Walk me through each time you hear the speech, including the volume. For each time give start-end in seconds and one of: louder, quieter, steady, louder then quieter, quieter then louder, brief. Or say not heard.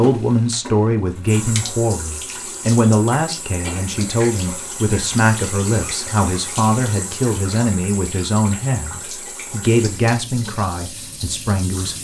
0.0-11.9 steady.